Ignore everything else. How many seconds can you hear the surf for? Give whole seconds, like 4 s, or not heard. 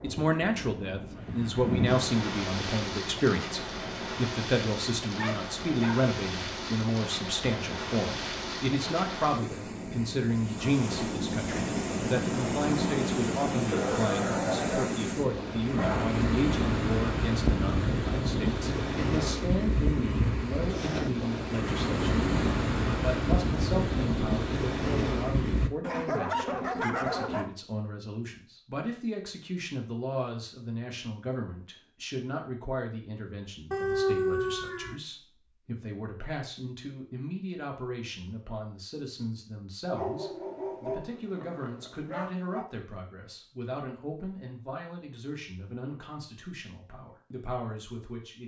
26 s.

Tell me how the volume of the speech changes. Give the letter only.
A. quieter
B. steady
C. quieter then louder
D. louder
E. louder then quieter
A.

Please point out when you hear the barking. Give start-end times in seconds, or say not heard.
5.2-6.0, 13.7-15.1, 15.8-16.2, 25.8-27.5, 33.7-35.0, 39.9-42.6.